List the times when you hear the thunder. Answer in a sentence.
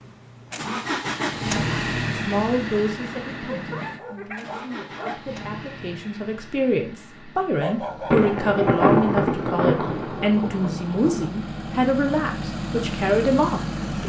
You can hear the thunder from 8.1 to 11.3 s.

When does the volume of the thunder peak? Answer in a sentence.
The volume of the thunder peaks at 9 seconds.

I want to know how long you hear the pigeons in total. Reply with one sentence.
You can't hear the pigeons here.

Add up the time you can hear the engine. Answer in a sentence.
You can hear the engine for 14 seconds altogether.